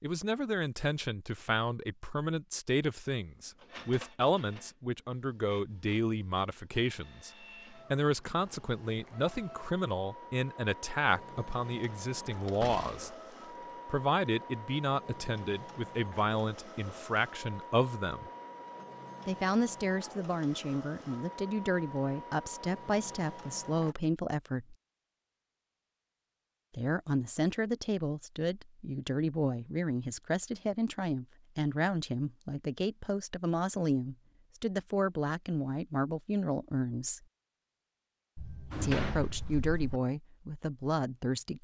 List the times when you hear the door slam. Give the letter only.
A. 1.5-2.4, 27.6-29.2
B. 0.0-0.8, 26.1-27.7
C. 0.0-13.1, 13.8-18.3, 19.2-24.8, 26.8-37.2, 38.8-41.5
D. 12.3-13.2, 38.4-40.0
D.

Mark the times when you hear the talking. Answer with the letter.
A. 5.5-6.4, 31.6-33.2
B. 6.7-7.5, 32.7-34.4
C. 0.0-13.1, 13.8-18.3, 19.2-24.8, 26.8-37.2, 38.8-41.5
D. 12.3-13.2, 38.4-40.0
C.